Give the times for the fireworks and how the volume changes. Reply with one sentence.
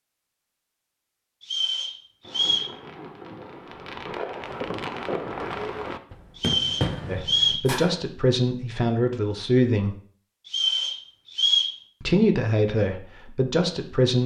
The fireworks can be heard from 2.2 to 8.0 s, getting louder.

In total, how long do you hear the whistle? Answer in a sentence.
The whistle can be heard for 4 seconds in total.